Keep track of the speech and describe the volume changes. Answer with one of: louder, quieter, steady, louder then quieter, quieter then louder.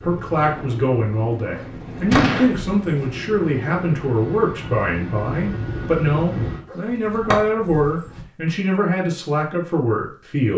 steady.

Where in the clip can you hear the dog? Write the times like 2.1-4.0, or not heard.
1.5-3.1, 6.7-8.2.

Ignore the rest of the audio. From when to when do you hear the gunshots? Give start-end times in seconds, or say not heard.
2.1-2.6.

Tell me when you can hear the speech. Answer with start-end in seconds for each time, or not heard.
0.0-10.5.